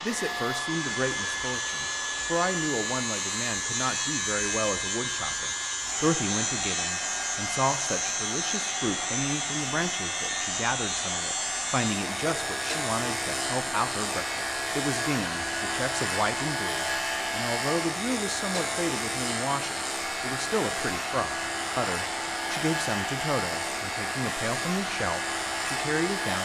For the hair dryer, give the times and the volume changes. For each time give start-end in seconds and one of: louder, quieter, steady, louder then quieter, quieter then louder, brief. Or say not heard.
0.0-26.3 steady.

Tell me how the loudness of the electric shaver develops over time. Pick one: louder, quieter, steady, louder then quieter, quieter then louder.
steady.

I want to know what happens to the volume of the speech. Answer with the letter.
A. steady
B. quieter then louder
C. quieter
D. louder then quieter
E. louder
A.